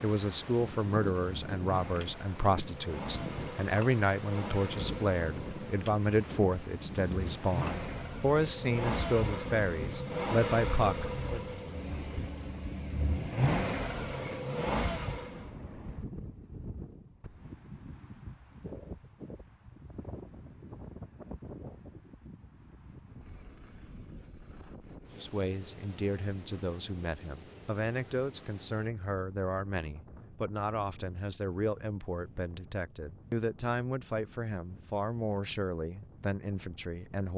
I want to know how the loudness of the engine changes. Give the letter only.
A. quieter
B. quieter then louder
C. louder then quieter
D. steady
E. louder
E.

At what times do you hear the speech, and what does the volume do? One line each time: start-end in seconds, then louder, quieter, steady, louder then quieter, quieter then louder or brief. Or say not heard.
0.0-11.4 steady
25.1-37.3 steady.